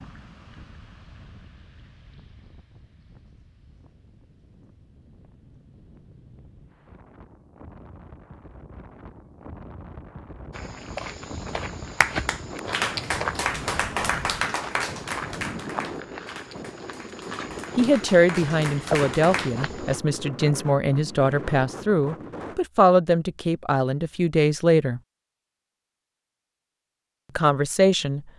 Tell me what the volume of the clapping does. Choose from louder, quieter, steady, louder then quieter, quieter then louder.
quieter then louder.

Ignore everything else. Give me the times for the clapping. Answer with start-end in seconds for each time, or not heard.
12.0-19.6.